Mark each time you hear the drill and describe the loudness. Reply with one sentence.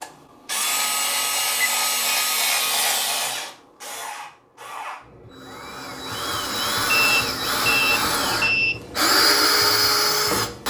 The drill can be heard from 0.0 to 10.6 s, getting quieter then louder.